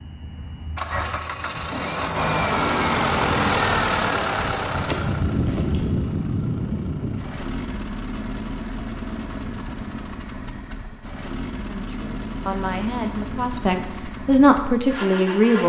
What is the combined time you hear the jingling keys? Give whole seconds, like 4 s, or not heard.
2 s.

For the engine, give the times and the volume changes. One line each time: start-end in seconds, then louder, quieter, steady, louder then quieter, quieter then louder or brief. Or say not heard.
0.0-15.6 quieter.